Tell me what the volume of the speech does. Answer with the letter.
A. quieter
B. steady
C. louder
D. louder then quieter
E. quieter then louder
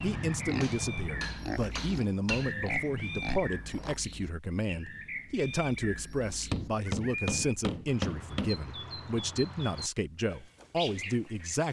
B.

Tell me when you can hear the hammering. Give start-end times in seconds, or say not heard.
0.6-2.5, 6.5-8.5.